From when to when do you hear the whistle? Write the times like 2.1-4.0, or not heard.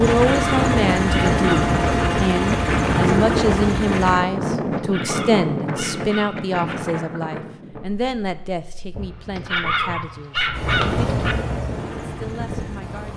not heard.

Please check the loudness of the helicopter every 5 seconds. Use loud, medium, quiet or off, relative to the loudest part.
loud, off, medium.